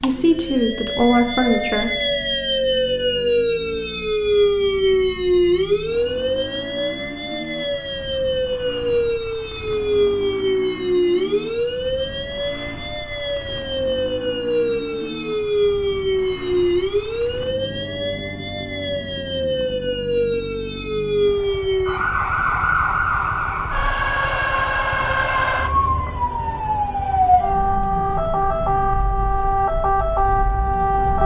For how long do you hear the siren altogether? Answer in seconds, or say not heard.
31 s.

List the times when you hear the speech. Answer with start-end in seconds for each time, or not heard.
0.0-1.9.